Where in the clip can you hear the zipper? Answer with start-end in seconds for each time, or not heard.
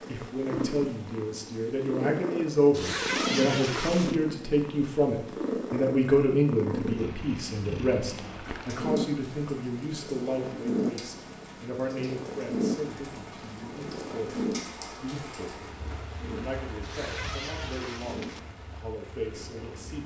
2.7-4.2, 16.8-18.4.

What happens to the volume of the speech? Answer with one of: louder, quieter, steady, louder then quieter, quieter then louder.
quieter.